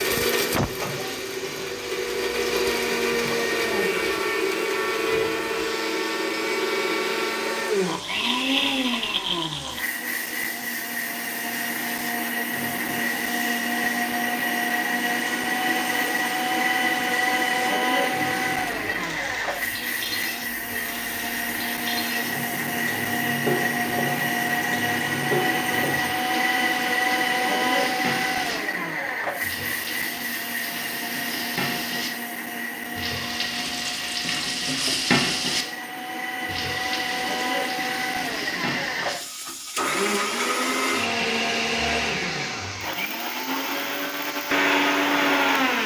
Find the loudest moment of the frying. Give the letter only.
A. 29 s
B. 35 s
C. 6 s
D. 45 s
B.